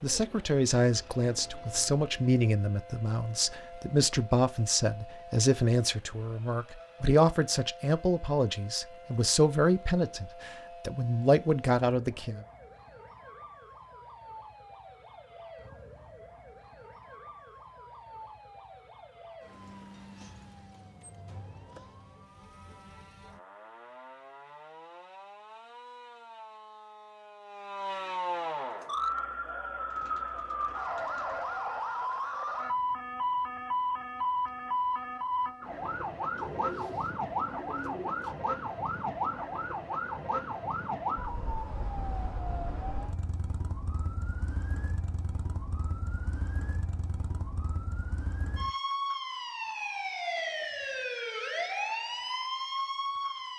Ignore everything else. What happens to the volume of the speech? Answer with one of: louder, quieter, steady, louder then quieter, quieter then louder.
steady.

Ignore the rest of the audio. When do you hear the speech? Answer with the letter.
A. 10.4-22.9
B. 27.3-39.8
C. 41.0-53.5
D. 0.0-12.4
D.